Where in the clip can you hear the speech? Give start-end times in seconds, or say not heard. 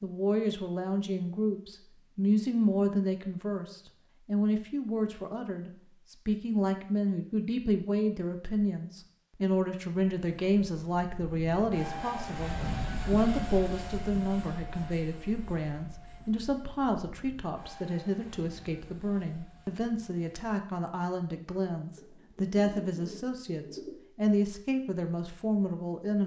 0.0-26.2.